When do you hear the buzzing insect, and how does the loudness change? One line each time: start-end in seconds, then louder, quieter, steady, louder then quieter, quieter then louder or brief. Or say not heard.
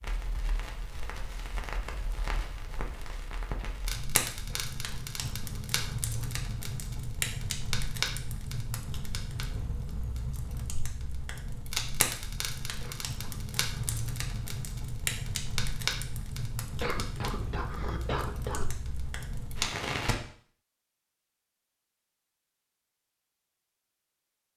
not heard.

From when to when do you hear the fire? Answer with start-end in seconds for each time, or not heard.
0.0-20.1.